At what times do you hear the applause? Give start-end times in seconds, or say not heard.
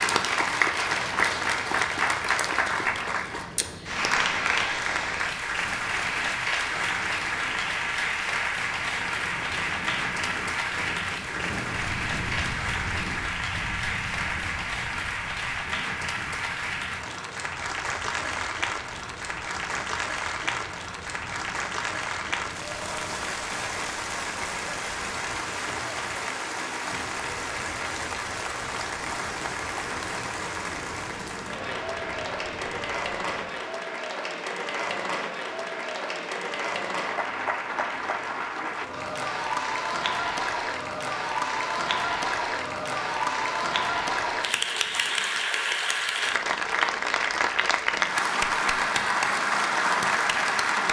0.0-50.8.